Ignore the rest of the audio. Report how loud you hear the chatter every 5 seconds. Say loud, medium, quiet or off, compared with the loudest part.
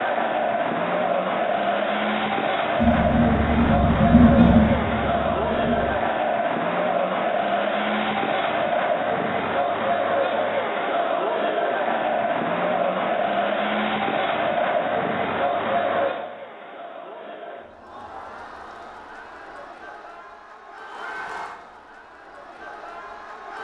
loud, loud, loud, medium, quiet.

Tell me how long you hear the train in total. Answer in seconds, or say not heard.
3 s.